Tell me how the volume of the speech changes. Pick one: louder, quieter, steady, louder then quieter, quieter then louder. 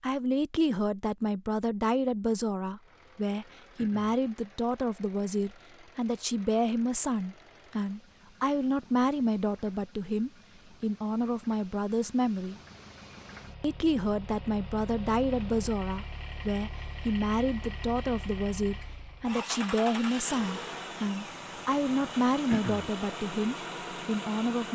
steady.